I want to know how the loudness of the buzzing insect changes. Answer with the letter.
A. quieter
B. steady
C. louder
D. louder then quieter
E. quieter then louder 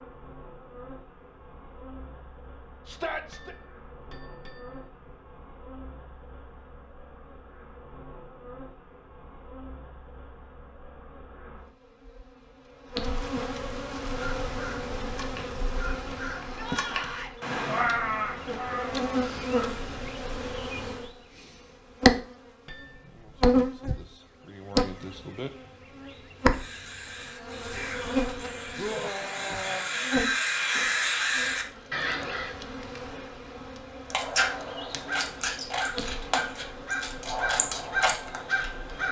D.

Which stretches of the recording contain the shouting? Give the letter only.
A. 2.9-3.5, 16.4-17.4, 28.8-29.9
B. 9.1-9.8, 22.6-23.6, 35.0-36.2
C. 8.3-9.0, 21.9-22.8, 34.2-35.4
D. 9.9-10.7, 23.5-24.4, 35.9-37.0
A.